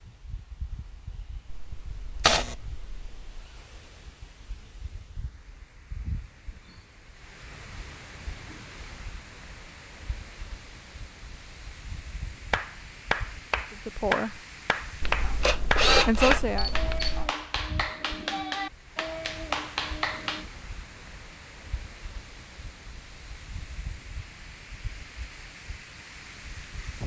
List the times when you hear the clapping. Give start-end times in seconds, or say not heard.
12.5-20.4.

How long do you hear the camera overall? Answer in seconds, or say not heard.
4 s.